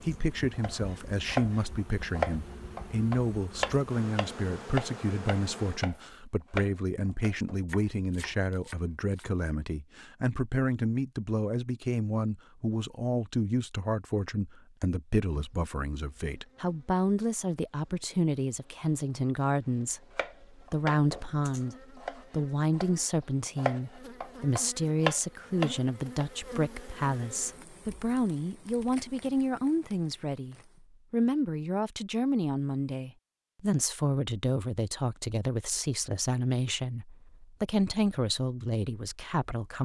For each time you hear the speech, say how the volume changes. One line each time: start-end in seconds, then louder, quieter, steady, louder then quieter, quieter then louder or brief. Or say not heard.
0.0-39.8 steady.